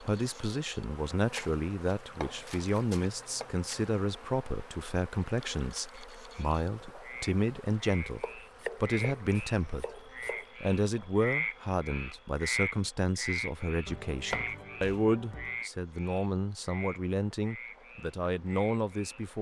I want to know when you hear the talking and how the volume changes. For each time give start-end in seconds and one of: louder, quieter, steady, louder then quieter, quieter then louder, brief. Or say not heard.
0.0-19.3 steady.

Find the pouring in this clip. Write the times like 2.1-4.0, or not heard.
not heard.